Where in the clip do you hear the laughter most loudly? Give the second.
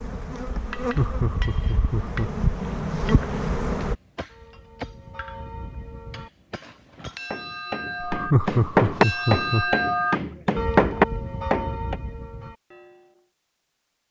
8 s.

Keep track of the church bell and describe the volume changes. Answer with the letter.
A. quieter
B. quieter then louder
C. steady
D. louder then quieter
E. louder
D.